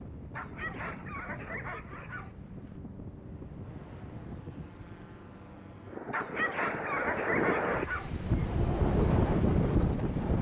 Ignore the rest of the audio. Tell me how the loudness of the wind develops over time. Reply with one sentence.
The volume of the wind goes up.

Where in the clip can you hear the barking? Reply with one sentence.
You can hear the barking from 0.3 to 2.3 s and from 6.1 to 8.1 s.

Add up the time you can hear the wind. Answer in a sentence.
You can hear the wind for 10 seconds altogether.